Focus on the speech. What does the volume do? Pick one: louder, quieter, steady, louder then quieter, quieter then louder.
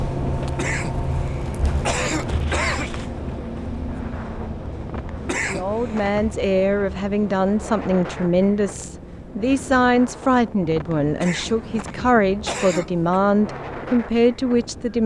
steady.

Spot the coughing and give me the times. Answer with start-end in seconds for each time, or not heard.
0.6-3.0, 5.2-6.2, 11.2-13.2.